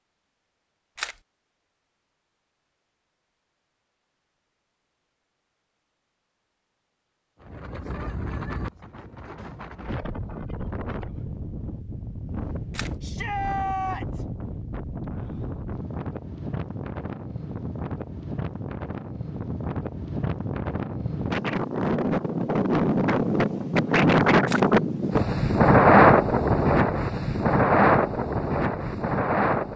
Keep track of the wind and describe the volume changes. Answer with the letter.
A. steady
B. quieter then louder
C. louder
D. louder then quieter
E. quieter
C.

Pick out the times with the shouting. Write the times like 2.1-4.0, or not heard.
13.0-14.2.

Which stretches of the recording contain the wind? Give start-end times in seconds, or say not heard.
7.4-29.7.